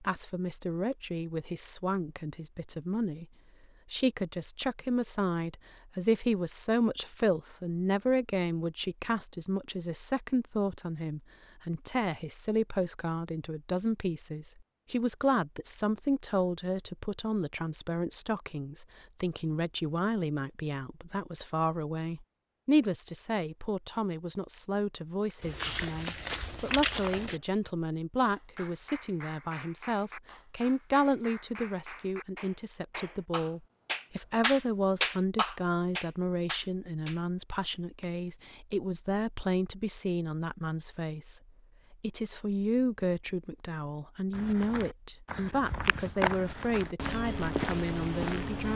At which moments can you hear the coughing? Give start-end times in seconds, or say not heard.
not heard.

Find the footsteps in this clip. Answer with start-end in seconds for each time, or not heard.
25.4-27.4, 44.3-48.7.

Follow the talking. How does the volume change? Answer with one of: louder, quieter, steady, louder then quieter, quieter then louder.
steady.